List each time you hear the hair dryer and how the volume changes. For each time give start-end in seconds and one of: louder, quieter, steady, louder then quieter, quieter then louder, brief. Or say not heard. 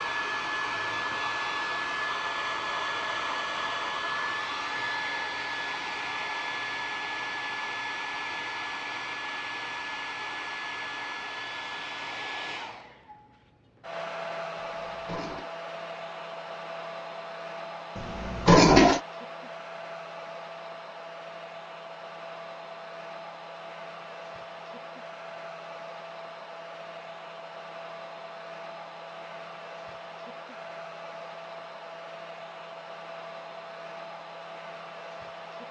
0.0-35.6 quieter.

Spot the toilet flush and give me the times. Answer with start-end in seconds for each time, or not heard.
14.6-15.5, 17.9-19.0.